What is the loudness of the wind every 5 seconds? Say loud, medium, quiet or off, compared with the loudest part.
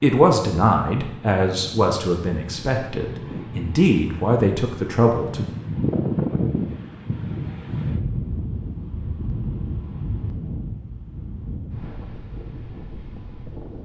medium, loud, medium.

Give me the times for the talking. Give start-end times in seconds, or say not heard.
0.0-5.5.